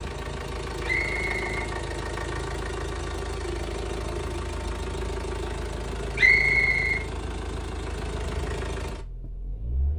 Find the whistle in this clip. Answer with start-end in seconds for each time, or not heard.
0.8-1.4, 6.2-7.0.